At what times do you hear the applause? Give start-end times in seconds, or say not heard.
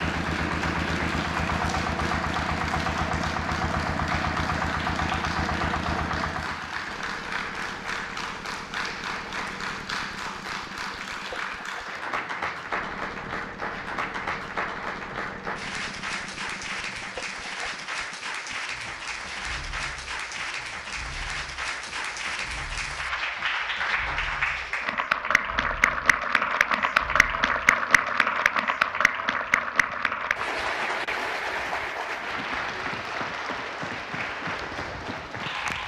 0.0-35.8.